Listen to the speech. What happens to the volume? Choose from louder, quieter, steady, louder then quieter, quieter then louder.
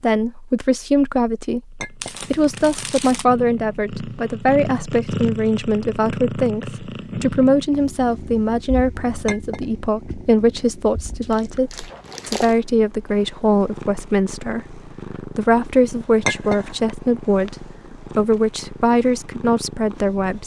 steady.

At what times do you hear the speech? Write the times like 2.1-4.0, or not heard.
0.0-20.4.